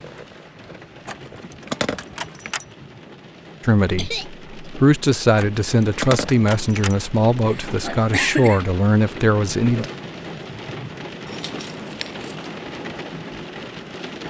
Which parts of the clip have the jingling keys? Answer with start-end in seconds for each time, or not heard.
1.1-2.6, 5.3-7.0, 11.2-12.6.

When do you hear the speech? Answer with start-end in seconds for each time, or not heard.
3.6-9.9.